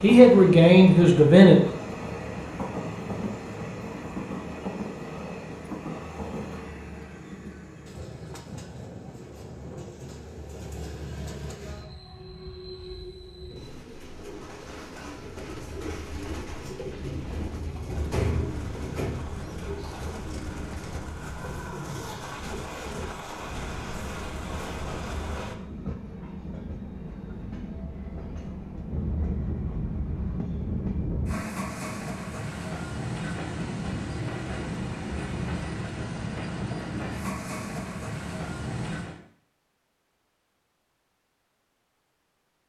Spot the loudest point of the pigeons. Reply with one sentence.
The volume of the pigeons peaks at 18 seconds.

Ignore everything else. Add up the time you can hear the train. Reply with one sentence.
The train can be heard for 39 seconds in total.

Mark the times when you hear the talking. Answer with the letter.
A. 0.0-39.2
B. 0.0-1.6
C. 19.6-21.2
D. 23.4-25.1
B.